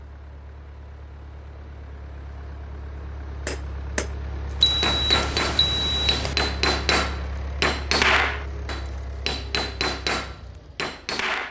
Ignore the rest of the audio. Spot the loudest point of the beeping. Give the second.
5 s.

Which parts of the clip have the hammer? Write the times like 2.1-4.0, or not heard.
3.5-11.4.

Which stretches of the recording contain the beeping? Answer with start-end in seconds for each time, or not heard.
4.6-6.3.